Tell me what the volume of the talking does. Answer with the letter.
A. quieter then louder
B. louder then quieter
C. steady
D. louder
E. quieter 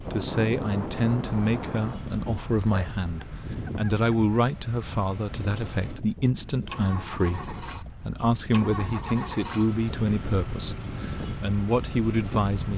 C.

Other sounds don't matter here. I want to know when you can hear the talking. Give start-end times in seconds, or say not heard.
0.1-12.7.